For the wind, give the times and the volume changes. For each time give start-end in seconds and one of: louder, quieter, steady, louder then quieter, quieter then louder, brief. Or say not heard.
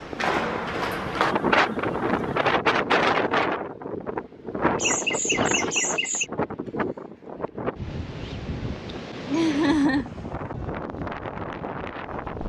0.0-12.4 quieter.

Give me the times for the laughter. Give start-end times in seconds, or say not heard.
1.0-2.5, 4.8-6.2, 9.2-10.1.